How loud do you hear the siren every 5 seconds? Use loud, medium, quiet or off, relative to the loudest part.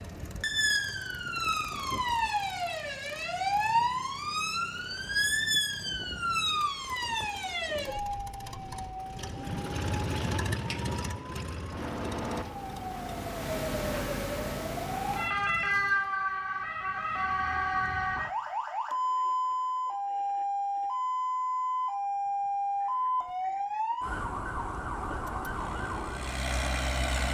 loud, loud, medium, loud, loud, medium.